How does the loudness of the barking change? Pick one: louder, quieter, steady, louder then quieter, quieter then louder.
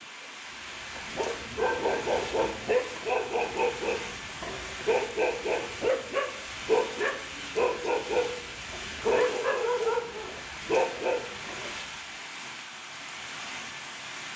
steady.